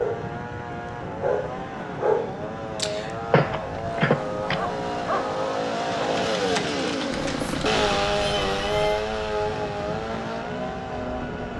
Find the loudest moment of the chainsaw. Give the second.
8 s.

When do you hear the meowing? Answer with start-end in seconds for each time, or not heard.
7.1-9.1.